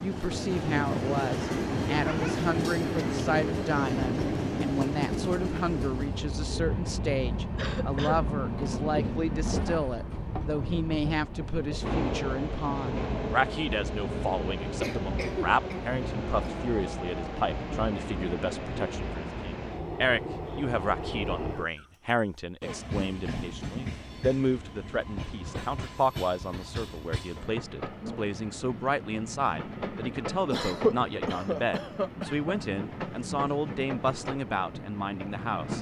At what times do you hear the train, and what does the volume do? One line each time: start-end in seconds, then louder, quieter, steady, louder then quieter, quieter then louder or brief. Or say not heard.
0.0-35.7 quieter.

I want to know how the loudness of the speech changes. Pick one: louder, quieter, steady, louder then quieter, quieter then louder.
steady.